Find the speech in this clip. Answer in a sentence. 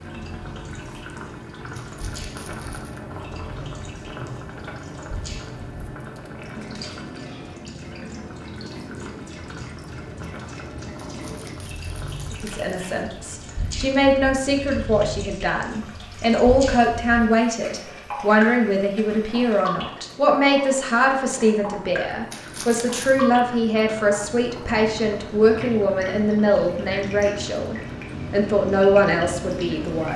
The speech can be heard from 12.3 to 30.1 s.